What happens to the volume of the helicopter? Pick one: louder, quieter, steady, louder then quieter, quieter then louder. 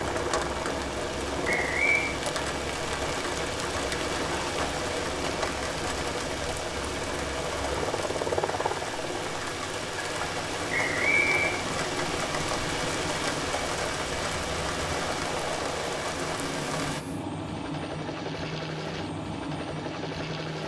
steady.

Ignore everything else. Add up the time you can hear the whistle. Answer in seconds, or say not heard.
2 s.